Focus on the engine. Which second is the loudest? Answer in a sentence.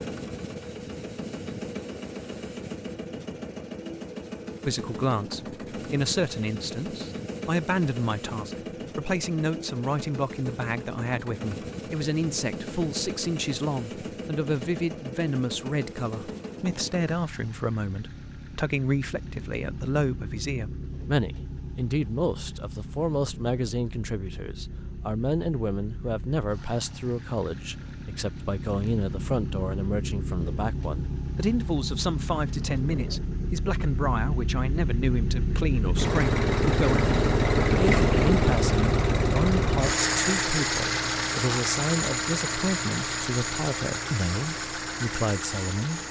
The volume of the engine peaks at 38 seconds.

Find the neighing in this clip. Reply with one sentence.
The neighing can't be heard in this clip.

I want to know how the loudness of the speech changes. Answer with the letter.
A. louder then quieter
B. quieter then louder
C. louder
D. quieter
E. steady
E.